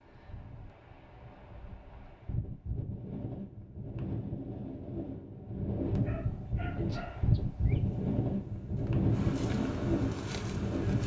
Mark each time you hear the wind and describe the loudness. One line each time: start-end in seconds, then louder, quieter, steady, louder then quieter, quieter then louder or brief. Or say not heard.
0.0-11.0 louder.